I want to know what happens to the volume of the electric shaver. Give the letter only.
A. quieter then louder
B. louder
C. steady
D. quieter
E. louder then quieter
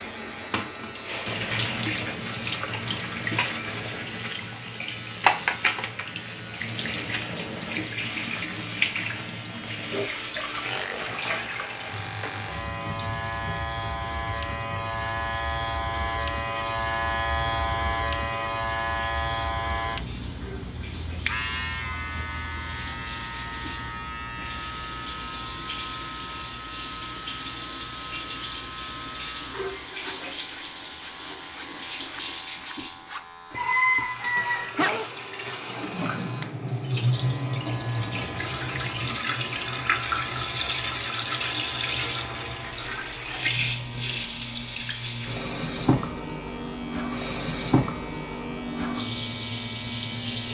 E.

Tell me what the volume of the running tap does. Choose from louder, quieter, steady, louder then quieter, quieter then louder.
quieter then louder.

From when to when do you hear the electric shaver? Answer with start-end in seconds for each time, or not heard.
0.0-50.4.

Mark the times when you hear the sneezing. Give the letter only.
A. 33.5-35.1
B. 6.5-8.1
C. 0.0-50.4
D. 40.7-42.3
A.